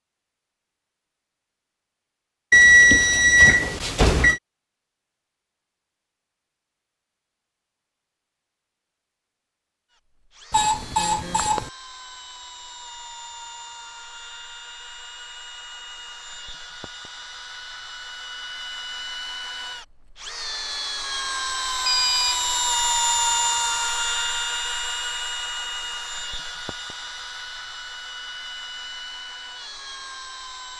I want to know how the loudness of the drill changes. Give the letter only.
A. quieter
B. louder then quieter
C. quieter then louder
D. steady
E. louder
B.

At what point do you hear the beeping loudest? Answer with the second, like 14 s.
3 s.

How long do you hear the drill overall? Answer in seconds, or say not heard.
21 s.